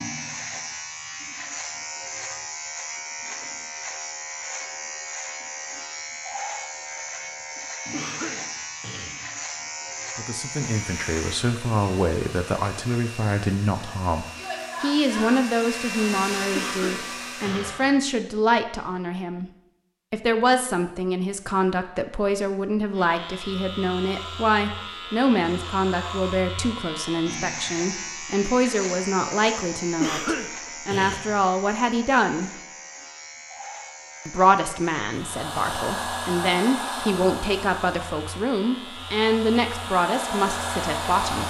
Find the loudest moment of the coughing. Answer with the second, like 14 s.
30 s.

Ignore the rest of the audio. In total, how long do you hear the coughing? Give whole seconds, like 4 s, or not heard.
4 s.